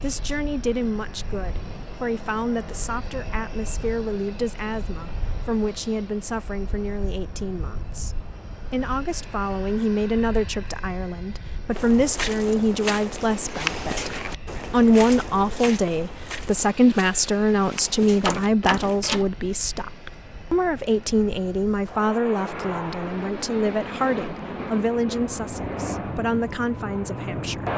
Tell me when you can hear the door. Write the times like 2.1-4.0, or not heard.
18.2-19.3.